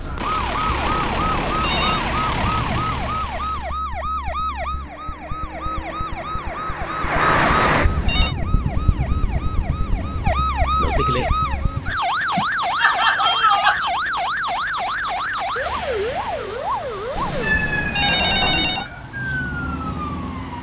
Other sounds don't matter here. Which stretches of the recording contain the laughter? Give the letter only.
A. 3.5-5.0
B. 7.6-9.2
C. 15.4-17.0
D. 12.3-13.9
D.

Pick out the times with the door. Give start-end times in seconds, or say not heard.
not heard.